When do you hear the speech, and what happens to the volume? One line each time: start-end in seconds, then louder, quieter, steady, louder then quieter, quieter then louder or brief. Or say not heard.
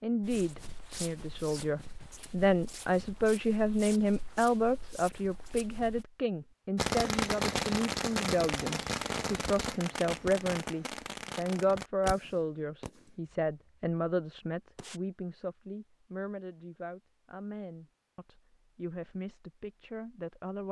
0.0-20.6 quieter.